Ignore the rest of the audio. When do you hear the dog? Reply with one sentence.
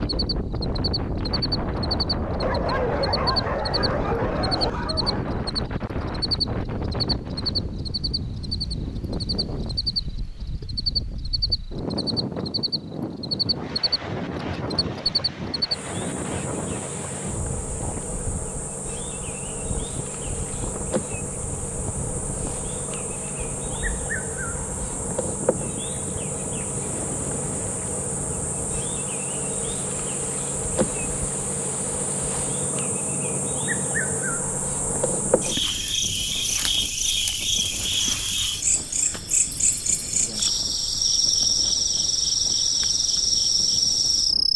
The dog can be heard from 2.4 to 5.2 s.